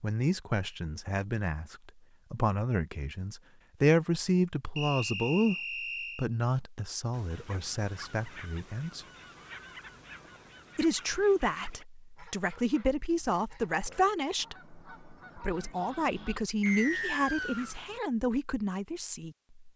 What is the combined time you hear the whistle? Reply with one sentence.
The whistle can be heard for 3 seconds in total.